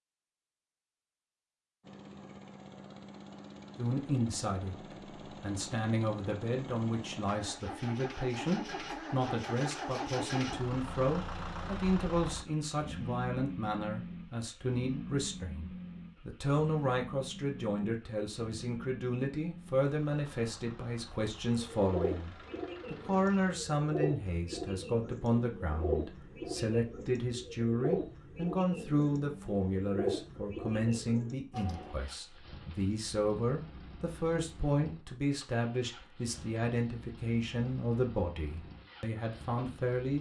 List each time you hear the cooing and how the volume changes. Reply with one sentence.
The cooing can be heard from 21.4 to 31.9 s, at a steady volume.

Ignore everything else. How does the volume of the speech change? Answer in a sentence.
The loudness of the speech stays about the same.